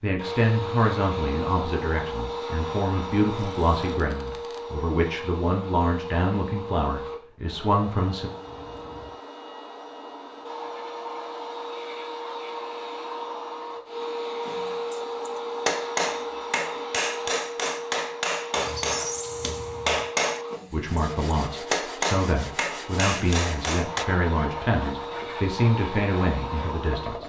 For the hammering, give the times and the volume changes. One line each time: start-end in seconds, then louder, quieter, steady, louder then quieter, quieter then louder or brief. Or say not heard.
14.4-24.1 steady.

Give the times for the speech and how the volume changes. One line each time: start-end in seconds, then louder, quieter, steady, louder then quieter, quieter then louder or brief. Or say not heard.
0.0-8.3 steady
20.7-27.2 steady.